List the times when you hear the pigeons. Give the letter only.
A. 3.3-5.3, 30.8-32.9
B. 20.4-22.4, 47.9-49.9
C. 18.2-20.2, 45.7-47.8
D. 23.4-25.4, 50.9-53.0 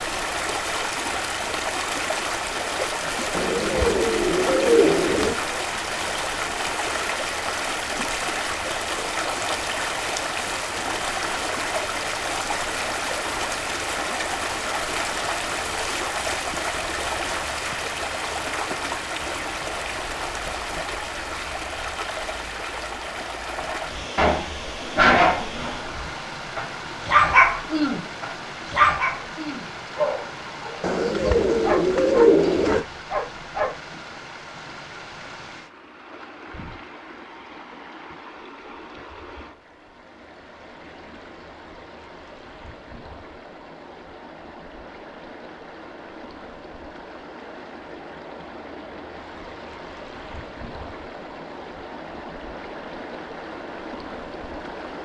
A.